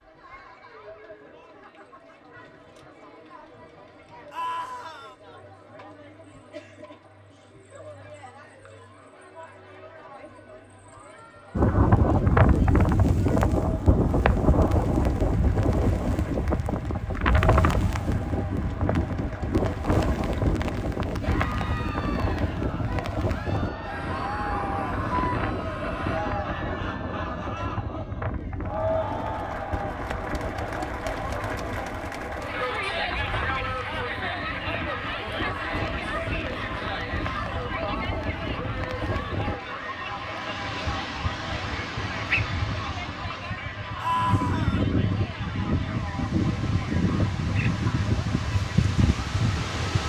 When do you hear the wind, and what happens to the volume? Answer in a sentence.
You can hear the wind from 11.6 to 50.0 s, getting quieter then louder.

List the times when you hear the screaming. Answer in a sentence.
You can hear the screaming from 4.3 to 5.2 s, from 23.8 to 26.2 s and from 44.0 to 44.9 s.